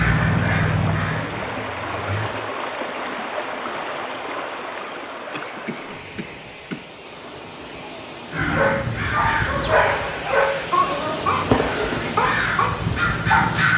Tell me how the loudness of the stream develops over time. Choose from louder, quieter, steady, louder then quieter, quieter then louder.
quieter then louder.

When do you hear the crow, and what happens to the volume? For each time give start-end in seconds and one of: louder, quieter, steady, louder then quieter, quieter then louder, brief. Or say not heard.
0.0-2.3 brief
8.3-13.7 quieter then louder.